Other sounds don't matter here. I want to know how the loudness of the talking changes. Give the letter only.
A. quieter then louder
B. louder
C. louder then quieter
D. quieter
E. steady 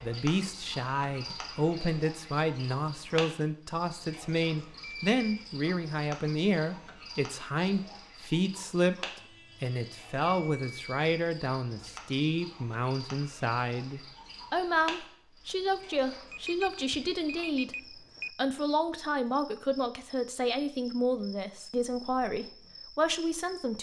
E.